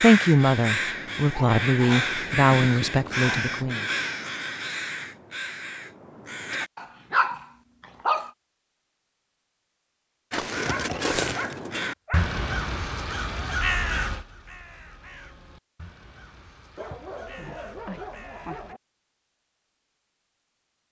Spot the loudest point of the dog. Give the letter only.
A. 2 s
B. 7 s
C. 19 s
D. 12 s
B.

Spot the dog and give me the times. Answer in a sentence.
The dog can be heard from 1.3 to 3.5 s, from 6.8 to 8.3 s, from 10.7 to 12.3 s and from 16.8 to 18.8 s.